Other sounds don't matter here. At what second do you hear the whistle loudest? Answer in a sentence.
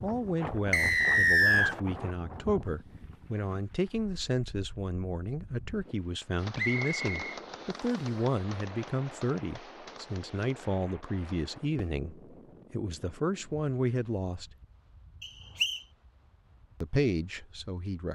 The volume of the whistle peaks at 1 second.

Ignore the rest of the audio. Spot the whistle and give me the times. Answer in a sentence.
You can hear the whistle from 0.7 to 1.8 s, from 6.5 to 8.1 s and from 15.2 to 15.8 s.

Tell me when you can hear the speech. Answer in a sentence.
You can hear the speech from 0.0 to 14.5 s and from 16.8 to 18.1 s.